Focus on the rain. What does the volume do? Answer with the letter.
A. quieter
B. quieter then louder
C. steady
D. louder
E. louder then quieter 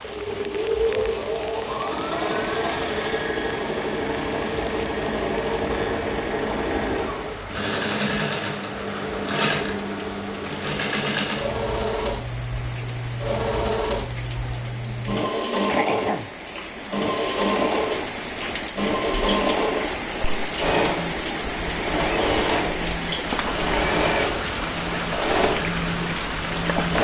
D.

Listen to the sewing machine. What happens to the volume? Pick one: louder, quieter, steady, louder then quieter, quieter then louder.
steady.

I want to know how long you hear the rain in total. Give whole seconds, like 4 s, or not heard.
27 s.